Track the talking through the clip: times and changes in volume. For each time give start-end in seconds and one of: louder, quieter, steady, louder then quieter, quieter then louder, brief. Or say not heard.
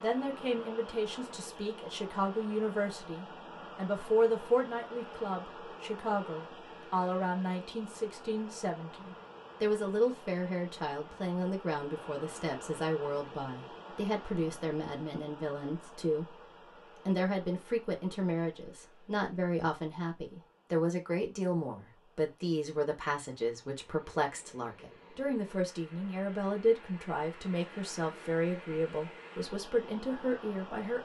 0.0-30.9 steady.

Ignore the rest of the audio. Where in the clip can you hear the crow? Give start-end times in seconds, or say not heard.
not heard.